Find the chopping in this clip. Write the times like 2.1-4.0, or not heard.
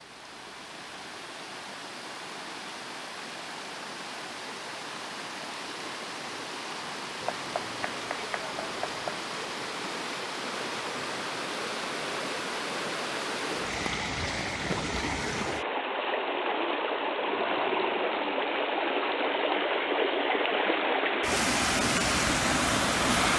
7.2-9.2.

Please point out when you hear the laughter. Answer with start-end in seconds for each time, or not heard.
not heard.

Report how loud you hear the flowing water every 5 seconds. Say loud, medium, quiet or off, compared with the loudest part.
quiet, medium, medium, loud, loud.